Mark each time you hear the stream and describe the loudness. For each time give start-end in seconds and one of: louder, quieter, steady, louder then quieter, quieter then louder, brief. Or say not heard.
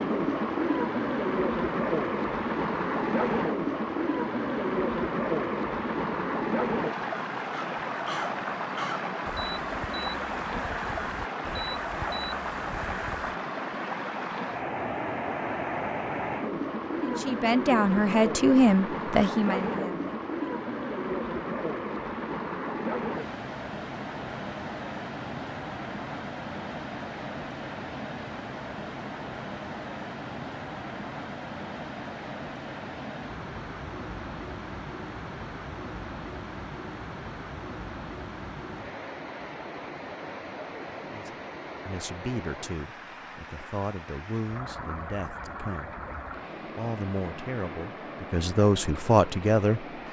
0.0-50.0 quieter.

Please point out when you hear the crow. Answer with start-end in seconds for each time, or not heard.
7.5-13.4.